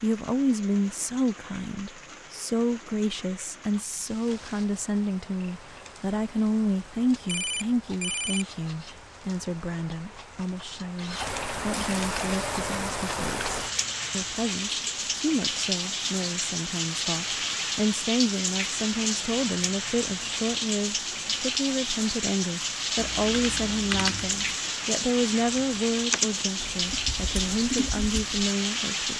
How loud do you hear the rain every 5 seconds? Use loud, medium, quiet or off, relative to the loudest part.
quiet, quiet, loud, loud, loud, loud.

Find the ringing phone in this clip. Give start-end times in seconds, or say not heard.
7.2-8.4.